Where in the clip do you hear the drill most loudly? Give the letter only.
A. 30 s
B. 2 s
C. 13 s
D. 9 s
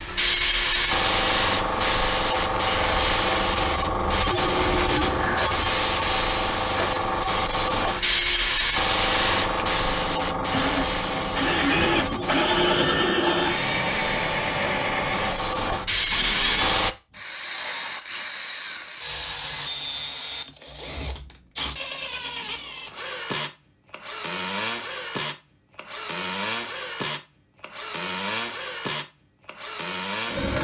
C.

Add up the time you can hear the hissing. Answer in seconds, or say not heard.
17 s.